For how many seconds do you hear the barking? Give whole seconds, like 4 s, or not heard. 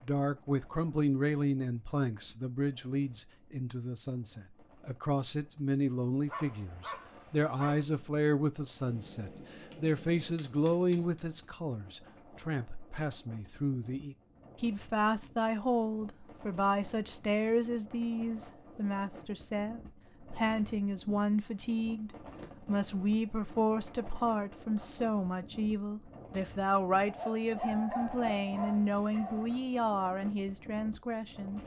4 s.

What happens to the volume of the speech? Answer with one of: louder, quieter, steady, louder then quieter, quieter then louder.
steady.